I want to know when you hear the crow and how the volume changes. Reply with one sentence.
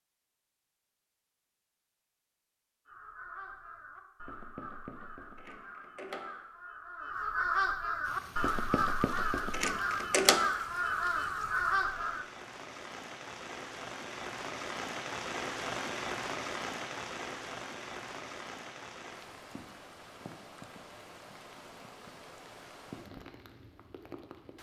The crow can be heard from 2.9 to 12.2 s, getting louder.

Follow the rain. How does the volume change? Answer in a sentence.
The loudness of the rain goes up, then down.